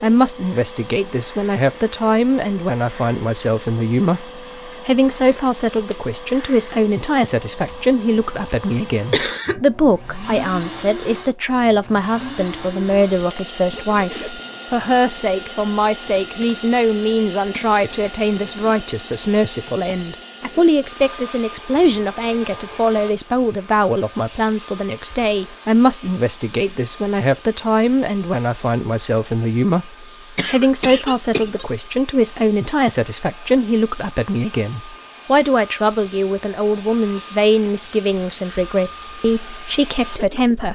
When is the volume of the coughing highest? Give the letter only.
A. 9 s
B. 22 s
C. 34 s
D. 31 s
A.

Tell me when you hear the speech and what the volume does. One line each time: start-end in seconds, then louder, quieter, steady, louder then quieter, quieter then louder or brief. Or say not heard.
0.0-40.7 steady.